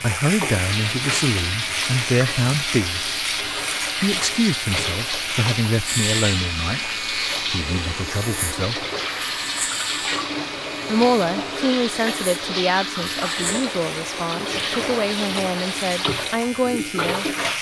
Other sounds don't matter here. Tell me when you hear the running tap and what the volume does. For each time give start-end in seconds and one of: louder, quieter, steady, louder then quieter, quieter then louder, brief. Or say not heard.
0.0-17.5 steady.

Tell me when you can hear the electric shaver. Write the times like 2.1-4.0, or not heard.
0.0-17.5.